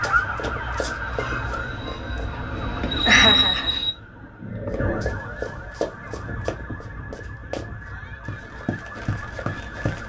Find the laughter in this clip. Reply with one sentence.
The laughter can be heard from 3.0 to 3.8 s.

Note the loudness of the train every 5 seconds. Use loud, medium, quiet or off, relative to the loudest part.
loud, off.